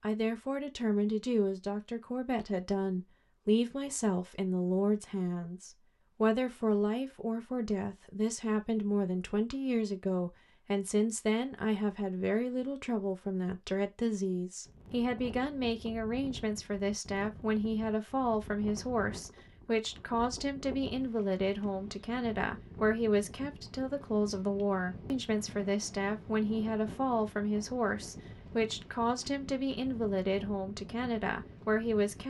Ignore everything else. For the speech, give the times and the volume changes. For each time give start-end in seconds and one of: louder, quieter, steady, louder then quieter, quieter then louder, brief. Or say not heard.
0.0-32.2 steady.